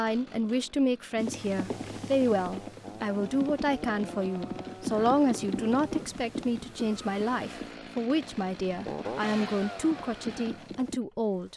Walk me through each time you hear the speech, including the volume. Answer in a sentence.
The speech can be heard from 0.0 to 11.5 s, at a steady volume.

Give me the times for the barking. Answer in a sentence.
The barking can't be heard in this clip.